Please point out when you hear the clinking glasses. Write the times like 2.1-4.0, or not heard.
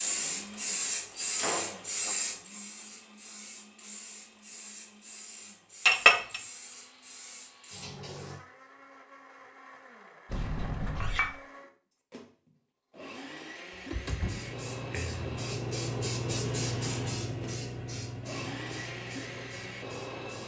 5.8-6.4, 10.8-11.3.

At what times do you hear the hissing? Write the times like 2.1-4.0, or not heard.
0.0-8.4, 14.2-20.4.